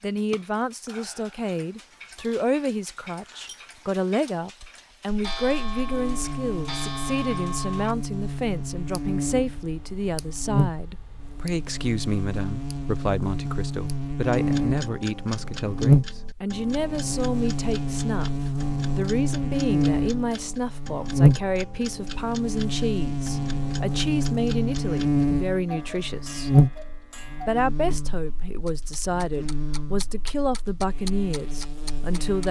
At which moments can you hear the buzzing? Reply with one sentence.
You can hear the buzzing from 5.3 to 32.4 s.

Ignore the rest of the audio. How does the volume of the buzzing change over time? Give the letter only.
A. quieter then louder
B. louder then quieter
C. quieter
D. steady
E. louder
B.